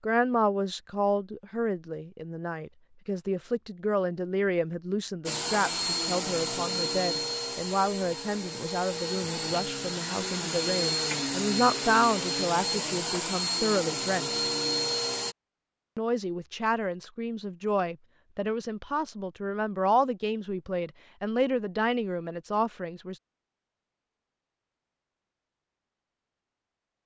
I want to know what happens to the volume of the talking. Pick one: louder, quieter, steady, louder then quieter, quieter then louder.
steady.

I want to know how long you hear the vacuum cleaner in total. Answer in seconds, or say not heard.
10 s.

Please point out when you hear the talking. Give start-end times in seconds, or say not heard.
0.0-14.4, 15.9-23.2.